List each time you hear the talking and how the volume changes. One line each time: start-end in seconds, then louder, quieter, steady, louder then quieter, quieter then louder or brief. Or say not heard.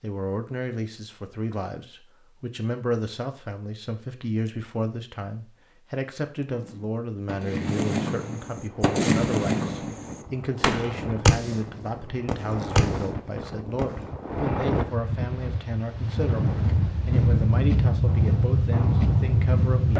0.0-19.9 steady.